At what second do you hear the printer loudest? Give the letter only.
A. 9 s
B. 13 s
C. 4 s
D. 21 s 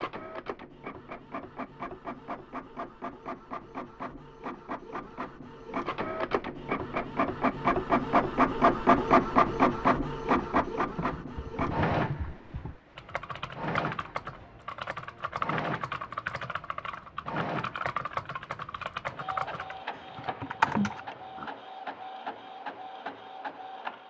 A.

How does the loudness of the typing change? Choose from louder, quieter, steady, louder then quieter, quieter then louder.
louder.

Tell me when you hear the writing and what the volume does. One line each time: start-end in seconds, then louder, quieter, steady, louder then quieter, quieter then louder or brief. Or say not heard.
not heard.